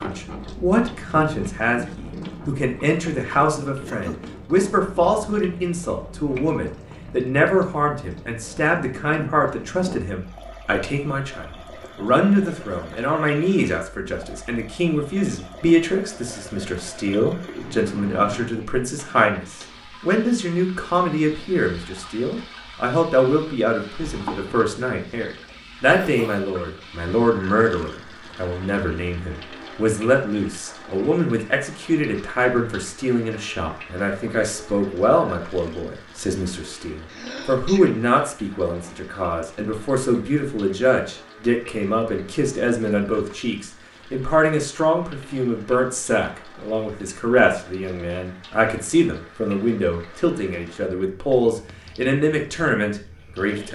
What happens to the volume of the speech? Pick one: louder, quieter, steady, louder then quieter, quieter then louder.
steady.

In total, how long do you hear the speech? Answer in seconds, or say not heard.
54 s.